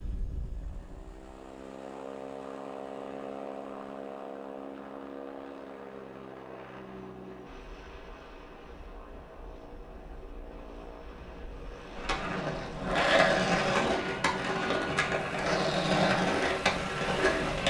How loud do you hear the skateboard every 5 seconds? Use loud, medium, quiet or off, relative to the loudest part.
off, off, loud, loud.